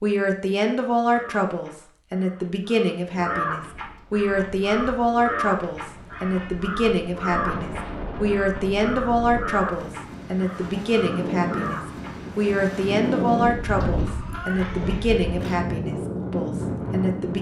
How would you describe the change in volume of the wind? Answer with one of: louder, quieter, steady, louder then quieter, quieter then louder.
louder.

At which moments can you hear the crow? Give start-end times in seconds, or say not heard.
0.9-12.2.